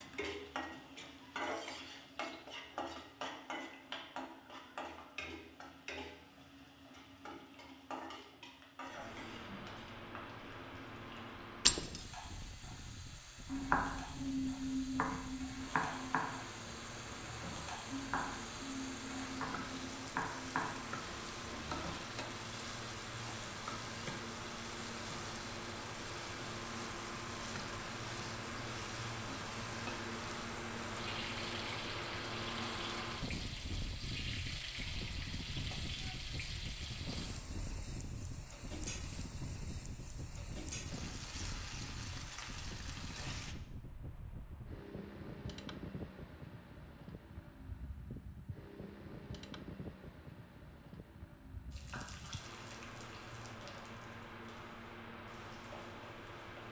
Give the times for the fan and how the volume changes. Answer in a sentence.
You can hear the fan from 8.8 to 56.6 s, getting louder then quieter.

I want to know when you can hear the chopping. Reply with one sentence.
The chopping can be heard from 13.4 to 22.0 s.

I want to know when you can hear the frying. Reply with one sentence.
The frying can be heard from 0.0 to 43.5 s and from 51.7 to 56.6 s.